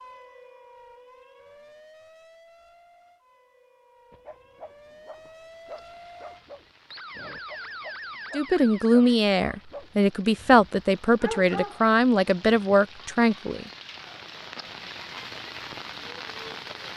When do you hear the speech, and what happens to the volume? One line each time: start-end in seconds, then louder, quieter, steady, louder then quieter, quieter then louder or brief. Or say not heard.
8.3-13.7 steady.